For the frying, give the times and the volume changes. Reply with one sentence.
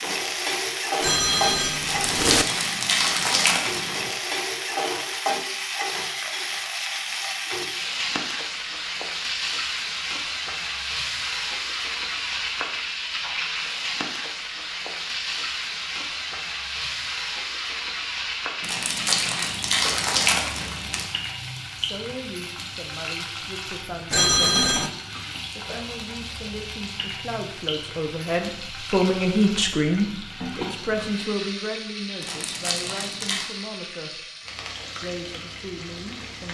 The frying can be heard from 0.0 to 36.4 s, getting quieter.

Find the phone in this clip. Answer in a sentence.
You can hear the phone from 1.0 to 2.5 s and from 24.1 to 24.9 s.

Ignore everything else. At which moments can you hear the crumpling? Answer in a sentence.
You can hear the crumpling from 1.8 to 4.2 s, from 18.6 to 21.1 s and from 32.2 to 33.5 s.